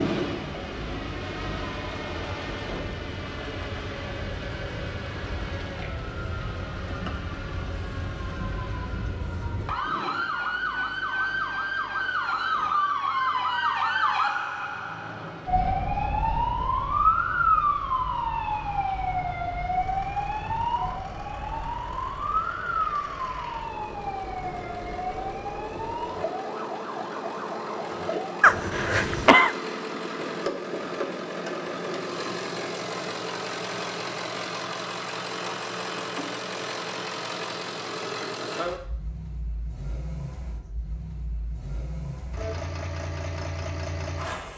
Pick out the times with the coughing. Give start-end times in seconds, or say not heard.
28.4-29.6.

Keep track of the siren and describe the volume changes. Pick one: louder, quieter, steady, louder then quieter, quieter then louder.
louder then quieter.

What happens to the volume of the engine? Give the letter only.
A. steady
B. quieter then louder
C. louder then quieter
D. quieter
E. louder
B.